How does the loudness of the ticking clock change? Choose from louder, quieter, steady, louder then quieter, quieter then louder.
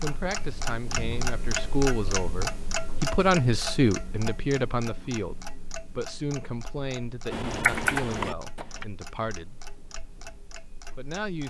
quieter.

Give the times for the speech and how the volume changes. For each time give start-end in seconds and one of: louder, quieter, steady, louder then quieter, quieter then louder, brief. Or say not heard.
0.0-9.6 louder then quieter
10.8-11.4 brief.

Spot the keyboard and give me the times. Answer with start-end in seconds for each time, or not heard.
7.3-8.8.